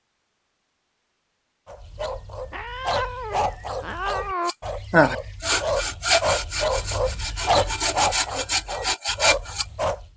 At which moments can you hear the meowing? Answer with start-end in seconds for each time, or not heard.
2.5-4.5.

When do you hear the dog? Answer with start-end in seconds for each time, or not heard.
1.6-10.1.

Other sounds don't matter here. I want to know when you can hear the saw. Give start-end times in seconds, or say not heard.
4.5-9.7.